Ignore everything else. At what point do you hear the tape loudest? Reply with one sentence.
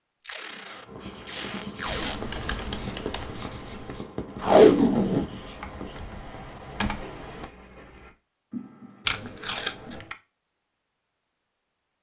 The loudest moment of the tape is at 5 seconds.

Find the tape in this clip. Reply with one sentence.
The tape can be heard from 0.2 to 2.1 s, from 4.4 to 5.2 s and from 9.1 to 10.2 s.